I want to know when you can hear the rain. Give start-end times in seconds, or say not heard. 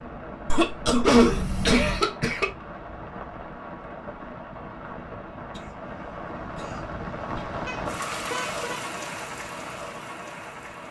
0.0-10.8.